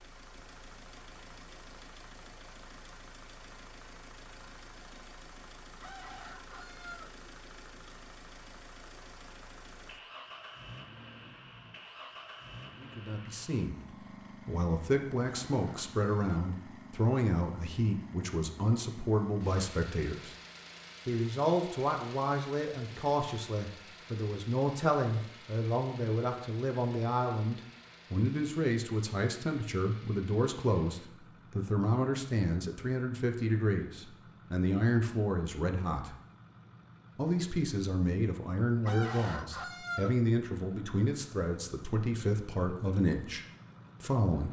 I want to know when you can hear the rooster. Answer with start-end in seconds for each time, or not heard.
5.8-7.2, 15.2-16.6, 38.9-40.1.